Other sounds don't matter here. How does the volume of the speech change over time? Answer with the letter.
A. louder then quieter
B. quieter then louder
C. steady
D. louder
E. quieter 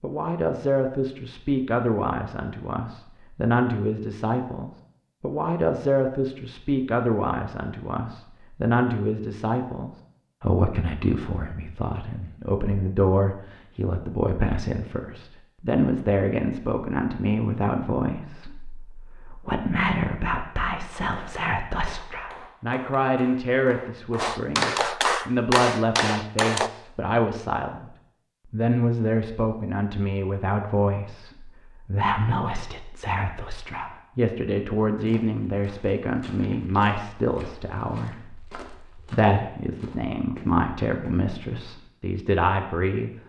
C.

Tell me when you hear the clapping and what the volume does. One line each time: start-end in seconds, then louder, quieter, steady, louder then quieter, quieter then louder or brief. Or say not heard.
20.9-26.7 louder.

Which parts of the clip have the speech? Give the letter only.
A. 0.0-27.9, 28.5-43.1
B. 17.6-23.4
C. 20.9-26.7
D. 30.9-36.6
A.